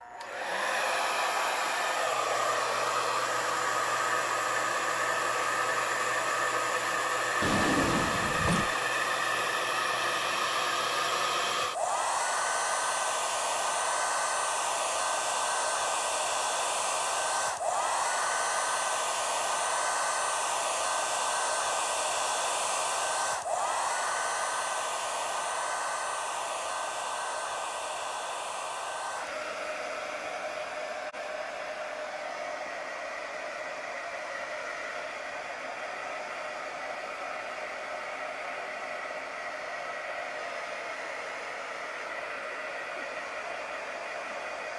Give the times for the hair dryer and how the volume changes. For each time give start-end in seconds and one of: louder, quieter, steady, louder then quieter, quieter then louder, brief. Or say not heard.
0.0-44.7 quieter.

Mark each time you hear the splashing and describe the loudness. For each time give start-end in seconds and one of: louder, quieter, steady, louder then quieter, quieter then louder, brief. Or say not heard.
not heard.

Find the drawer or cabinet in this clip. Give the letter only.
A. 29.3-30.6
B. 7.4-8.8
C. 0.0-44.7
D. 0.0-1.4
B.